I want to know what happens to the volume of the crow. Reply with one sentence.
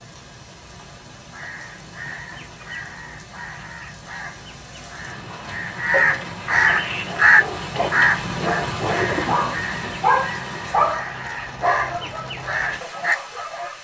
The loudness of the crow goes up, then down.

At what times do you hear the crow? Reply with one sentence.
You can hear the crow from 1.2 to 13.2 s.